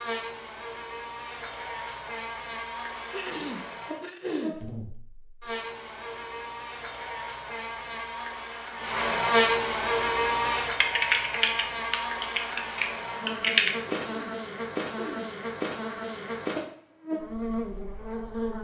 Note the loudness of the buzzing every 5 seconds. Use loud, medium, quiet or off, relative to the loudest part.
medium, loud, loud, loud.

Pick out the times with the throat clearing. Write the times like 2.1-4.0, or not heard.
3.1-4.5, 13.9-15.3.